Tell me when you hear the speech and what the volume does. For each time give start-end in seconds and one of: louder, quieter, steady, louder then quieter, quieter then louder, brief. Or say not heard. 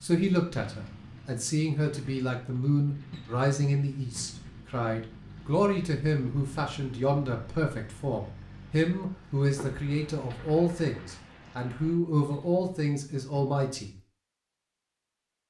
0.0-13.9 steady.